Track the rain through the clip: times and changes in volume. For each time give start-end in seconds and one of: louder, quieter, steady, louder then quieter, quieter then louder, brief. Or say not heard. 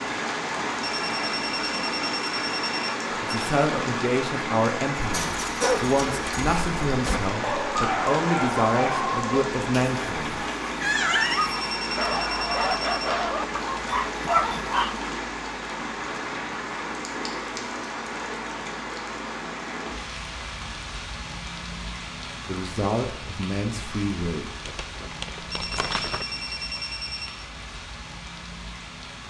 0.0-29.2 quieter.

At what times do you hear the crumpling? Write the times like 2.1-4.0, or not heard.
24.6-26.2.